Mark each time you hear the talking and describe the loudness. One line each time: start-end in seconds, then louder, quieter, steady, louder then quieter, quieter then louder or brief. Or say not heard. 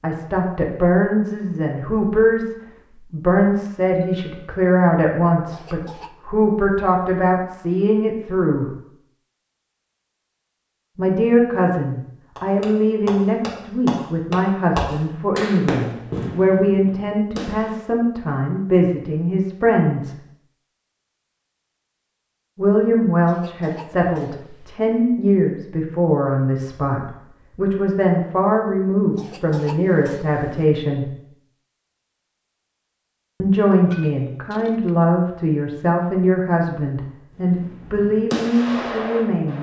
0.0-8.8 steady
10.9-20.1 steady
22.6-31.1 steady
33.4-39.5 steady.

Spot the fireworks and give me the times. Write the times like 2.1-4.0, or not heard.
12.3-17.8, 37.4-39.5.